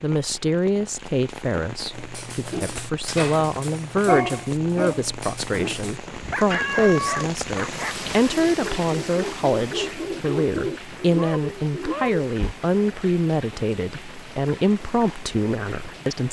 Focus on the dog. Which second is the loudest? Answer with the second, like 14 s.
4 s.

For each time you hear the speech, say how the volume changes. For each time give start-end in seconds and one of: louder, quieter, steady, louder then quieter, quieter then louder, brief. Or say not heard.
0.0-16.2 steady.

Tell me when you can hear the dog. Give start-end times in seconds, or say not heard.
1.9-12.6.